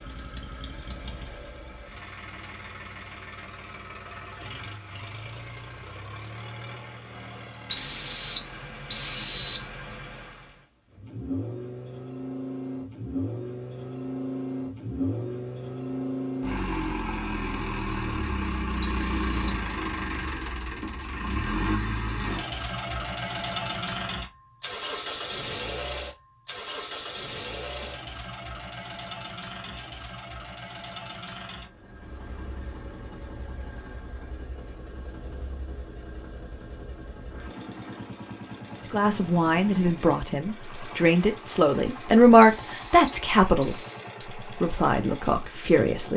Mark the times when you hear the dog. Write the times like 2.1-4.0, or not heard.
not heard.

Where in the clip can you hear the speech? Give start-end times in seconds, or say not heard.
38.9-43.8, 44.6-46.1.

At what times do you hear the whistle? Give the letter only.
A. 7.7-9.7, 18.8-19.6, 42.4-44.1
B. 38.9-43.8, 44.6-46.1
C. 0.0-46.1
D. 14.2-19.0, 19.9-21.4
A.